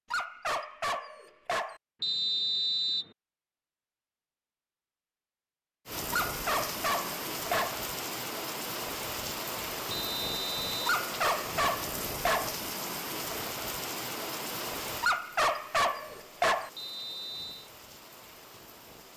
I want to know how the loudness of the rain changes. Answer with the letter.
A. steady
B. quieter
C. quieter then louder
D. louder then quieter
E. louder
B.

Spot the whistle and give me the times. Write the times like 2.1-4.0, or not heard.
2.0-3.1, 9.9-10.8, 16.8-17.7.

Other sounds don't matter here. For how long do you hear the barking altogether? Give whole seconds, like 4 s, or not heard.
7 s.